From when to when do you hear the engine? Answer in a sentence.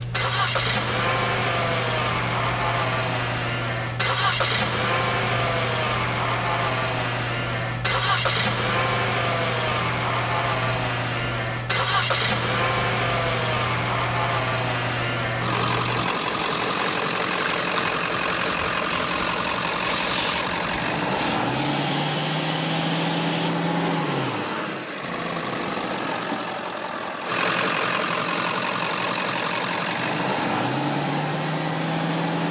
You can hear the engine from 0.0 to 32.4 s.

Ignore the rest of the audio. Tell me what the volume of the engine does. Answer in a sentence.
The volume of the engine stays about the same.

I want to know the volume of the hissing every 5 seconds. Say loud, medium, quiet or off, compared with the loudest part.
loud, loud, loud, loud, loud, off, off.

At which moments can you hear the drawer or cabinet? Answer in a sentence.
You can hear the drawer or cabinet from 25.0 to 26.1 s.